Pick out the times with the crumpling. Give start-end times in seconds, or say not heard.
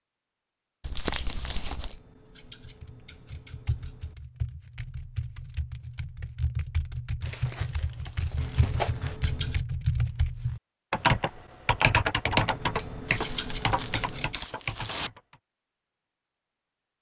0.8-2.0, 7.2-9.2, 13.1-15.1.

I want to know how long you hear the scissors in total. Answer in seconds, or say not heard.
6 s.